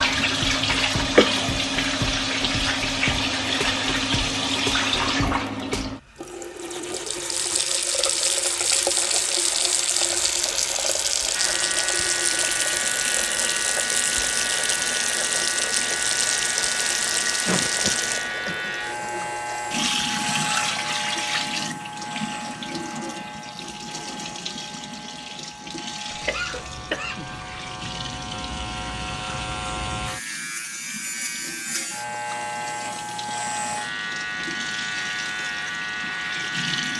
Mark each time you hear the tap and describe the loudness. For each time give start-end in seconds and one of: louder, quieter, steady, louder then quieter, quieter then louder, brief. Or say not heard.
0.0-36.9 quieter.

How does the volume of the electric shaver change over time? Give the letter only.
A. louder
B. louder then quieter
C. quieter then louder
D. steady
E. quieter
C.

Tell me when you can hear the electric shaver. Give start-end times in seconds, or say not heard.
11.3-36.9.